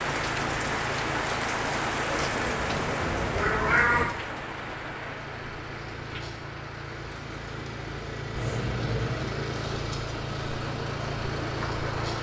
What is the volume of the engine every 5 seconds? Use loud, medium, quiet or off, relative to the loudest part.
medium, loud, loud.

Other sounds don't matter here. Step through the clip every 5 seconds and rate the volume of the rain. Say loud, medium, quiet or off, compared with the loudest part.
loud, medium, medium.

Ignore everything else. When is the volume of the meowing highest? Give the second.
4 s.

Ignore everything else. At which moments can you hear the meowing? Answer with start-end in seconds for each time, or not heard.
2.0-4.0, 8.3-9.3.